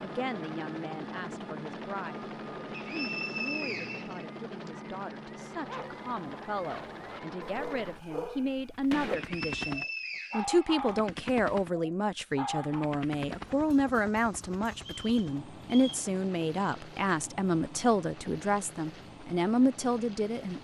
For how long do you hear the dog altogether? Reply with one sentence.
The dog can be heard for 7 seconds in total.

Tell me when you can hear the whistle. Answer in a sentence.
You can hear the whistle from 2.7 to 4.7 s, from 9.2 to 11.1 s and from 14.8 to 16.1 s.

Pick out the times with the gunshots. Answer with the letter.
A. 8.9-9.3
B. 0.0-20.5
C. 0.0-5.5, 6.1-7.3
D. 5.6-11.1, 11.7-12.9
A.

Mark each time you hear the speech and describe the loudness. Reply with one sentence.
The speech can be heard from 0.0 to 20.5 s, getting louder.